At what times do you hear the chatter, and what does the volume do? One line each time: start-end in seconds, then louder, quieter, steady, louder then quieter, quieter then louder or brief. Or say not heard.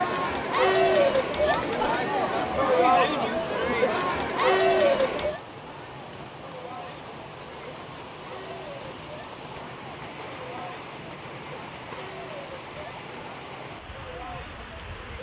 0.0-15.1 quieter.